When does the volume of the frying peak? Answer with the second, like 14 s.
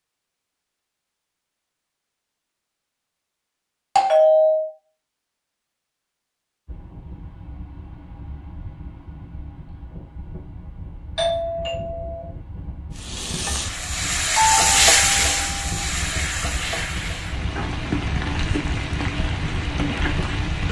15 s.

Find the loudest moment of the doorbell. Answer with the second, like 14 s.
4 s.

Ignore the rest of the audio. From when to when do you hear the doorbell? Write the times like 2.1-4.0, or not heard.
4.0-4.7, 11.2-12.2, 14.3-15.8.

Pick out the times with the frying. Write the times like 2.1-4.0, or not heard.
12.9-20.6.